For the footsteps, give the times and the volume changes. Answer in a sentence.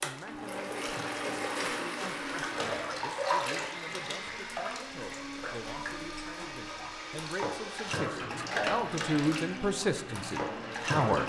You can't hear the footsteps here.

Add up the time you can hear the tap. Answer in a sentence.
You can hear the tap for 11 seconds altogether.